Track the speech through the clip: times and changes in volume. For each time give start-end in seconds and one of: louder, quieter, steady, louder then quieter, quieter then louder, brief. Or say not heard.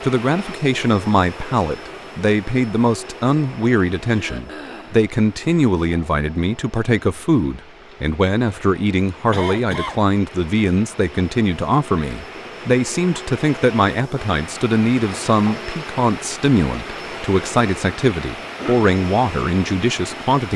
0.0-20.5 steady.